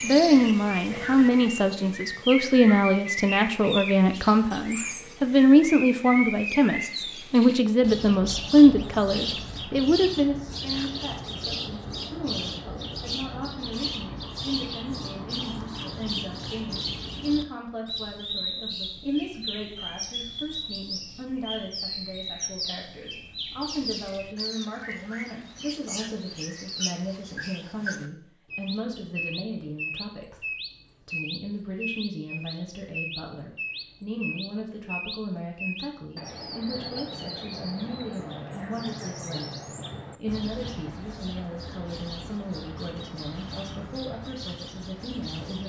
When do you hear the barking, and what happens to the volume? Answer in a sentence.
The barking can't be heard in this clip.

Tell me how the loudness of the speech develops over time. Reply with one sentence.
The loudness of the speech goes down.